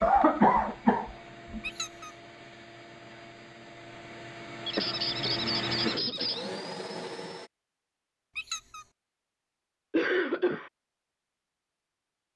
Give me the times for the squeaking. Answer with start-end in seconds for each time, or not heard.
1.6-2.1, 4.7-6.5, 8.3-8.8.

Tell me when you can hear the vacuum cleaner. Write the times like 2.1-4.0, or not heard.
0.0-7.5.